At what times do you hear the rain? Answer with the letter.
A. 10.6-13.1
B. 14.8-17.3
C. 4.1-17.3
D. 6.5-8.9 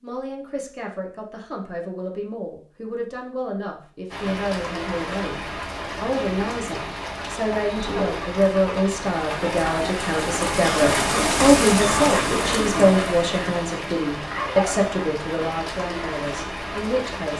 C.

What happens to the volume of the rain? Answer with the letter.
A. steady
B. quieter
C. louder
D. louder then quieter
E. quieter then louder
D.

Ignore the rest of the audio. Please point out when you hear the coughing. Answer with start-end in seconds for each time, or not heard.
10.6-13.1.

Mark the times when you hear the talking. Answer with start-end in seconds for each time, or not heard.
0.0-17.3.